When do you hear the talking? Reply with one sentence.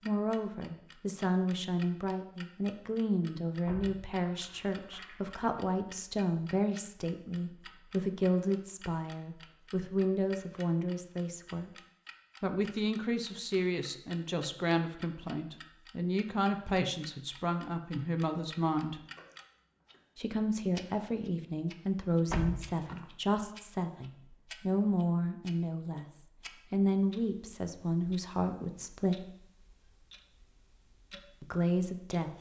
The talking can be heard from 0.0 to 11.7 s, from 12.4 to 19.0 s, from 20.1 to 29.2 s and from 31.4 to 32.3 s.